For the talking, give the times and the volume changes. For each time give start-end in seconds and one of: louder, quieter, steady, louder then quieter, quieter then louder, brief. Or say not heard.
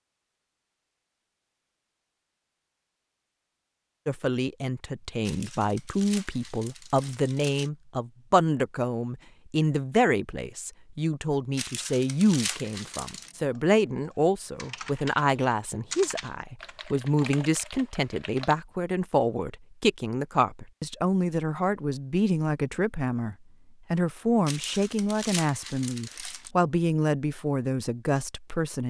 4.0-28.8 steady.